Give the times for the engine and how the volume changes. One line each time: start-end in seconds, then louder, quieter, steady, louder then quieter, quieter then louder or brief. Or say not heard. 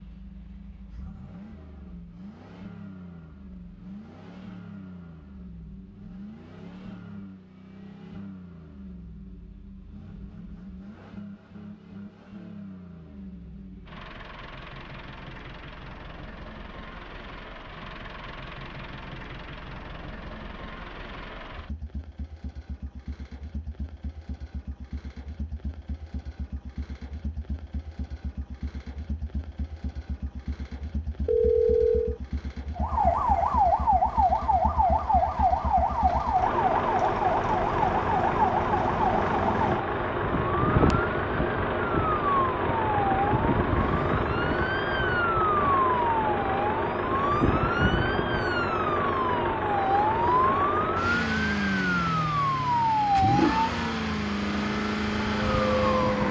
0.0-56.2 louder.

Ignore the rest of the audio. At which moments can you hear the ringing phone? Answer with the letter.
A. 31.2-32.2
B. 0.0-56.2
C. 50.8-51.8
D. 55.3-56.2
A.